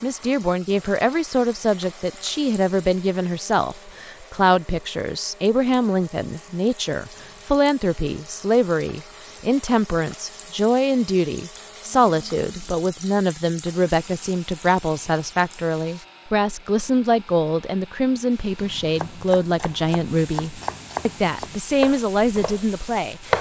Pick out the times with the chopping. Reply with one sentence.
You can hear the chopping from 18.6 to 23.3 s.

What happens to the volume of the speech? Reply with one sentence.
The volume of the speech stays about the same.